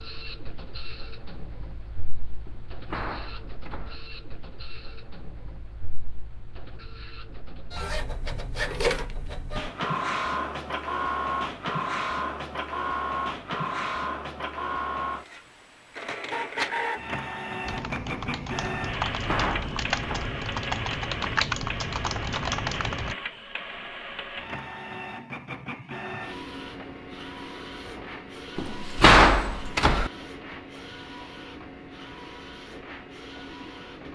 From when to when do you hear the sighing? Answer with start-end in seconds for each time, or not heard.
not heard.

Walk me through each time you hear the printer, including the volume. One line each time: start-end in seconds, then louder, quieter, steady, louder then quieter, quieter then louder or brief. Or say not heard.
0.0-34.1 louder then quieter.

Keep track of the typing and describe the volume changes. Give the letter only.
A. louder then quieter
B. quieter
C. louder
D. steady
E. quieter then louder
C.